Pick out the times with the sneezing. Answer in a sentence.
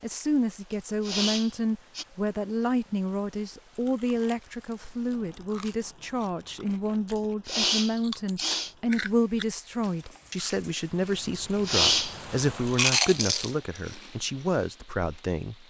The sneezing can be heard from 1.0 to 2.0 s, from 7.2 to 8.7 s and from 11.7 to 12.2 s.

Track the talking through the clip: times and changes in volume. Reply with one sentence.
You can hear the talking from 0.0 to 15.6 s, at a steady volume.